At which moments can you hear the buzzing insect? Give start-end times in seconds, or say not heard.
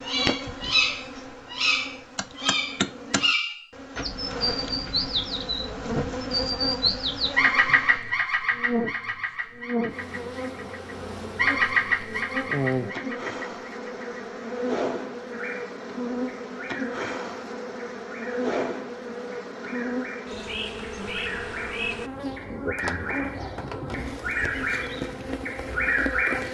0.0-26.4.